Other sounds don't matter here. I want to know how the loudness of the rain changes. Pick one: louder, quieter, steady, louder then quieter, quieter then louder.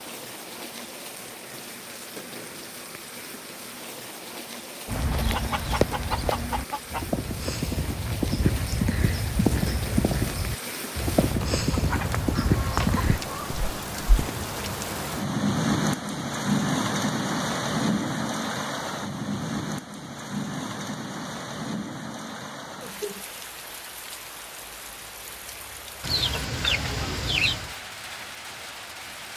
louder then quieter.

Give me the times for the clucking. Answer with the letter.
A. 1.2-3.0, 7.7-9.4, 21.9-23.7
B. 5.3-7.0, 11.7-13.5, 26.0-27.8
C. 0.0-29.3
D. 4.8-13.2
B.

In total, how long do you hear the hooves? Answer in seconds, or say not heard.
8 s.